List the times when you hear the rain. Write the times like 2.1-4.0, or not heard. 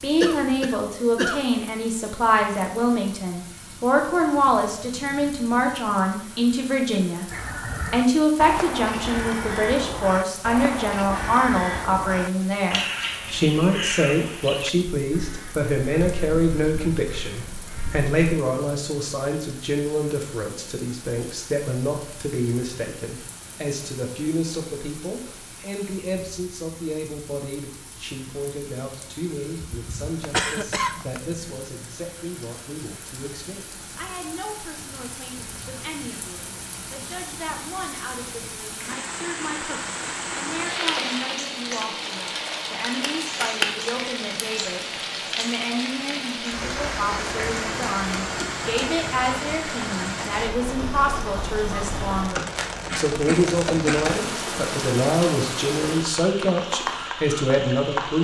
0.0-58.1.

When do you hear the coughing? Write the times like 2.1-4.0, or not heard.
0.2-1.4, 29.8-31.4, 52.5-54.5.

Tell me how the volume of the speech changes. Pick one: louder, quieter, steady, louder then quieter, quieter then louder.
quieter then louder.